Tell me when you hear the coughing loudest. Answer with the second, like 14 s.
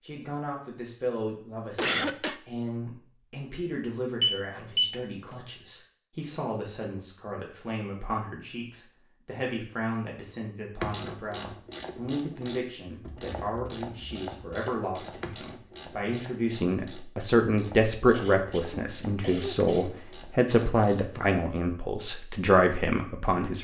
2 s.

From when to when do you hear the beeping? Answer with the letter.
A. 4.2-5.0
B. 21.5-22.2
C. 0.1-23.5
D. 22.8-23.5
A.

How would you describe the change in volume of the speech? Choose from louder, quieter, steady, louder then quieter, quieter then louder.
louder.